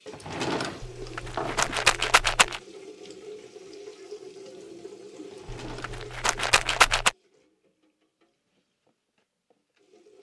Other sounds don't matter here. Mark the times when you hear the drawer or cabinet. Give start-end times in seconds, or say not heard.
0.1-1.9, 5.3-6.9.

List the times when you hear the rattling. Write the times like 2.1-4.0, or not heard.
0.8-2.6, 5.5-7.1.